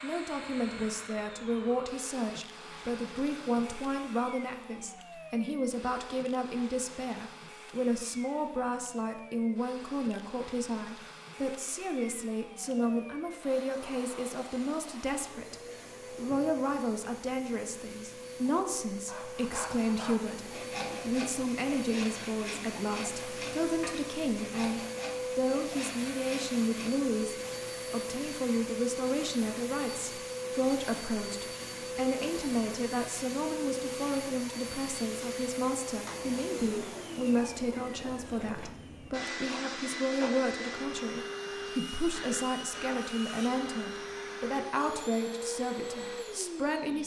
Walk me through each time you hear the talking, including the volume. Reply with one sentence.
You can hear the talking from 0.0 to 47.0 s, at a steady volume.